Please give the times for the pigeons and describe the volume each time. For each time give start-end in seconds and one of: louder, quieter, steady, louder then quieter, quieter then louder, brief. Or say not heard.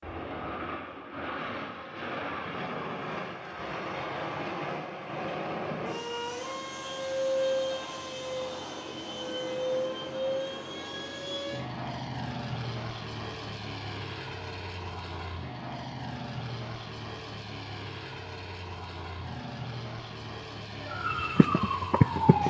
not heard.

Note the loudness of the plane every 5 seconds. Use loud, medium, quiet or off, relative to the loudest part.
loud, loud, loud, medium, medium.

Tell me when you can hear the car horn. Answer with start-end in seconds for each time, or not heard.
not heard.